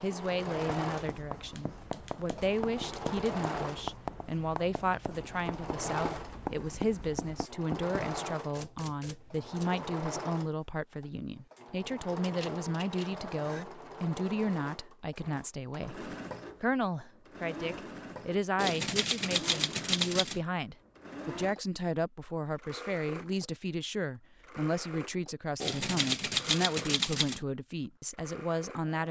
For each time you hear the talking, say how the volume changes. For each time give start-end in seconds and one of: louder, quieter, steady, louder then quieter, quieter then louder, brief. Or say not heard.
0.0-29.0 steady.